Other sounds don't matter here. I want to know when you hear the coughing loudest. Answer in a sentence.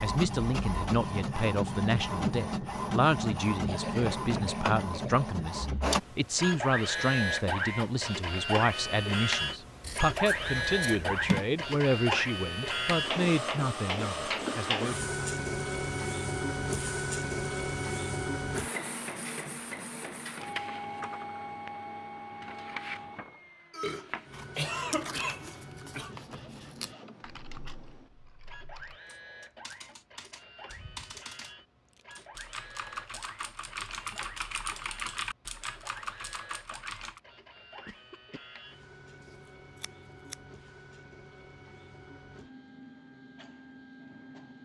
The loudest moment of the coughing is at 25 seconds.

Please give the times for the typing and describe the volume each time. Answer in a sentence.
You can hear the typing from 27.2 to 37.2 s, getting louder.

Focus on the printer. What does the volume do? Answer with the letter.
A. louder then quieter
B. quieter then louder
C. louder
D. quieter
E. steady
D.